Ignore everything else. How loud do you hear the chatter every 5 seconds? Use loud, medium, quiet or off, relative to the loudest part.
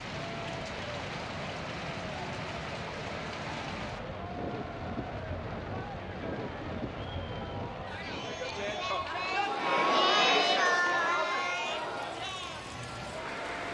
quiet, medium, loud.